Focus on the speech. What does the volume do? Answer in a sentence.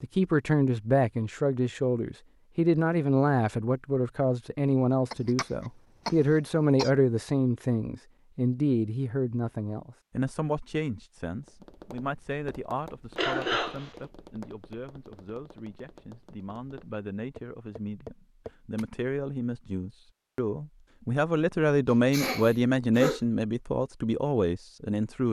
The volume of the speech goes down, then up.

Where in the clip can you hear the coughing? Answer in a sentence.
You can hear the coughing from 5.1 to 6.9 s, from 13.2 to 13.9 s and from 21.9 to 23.2 s.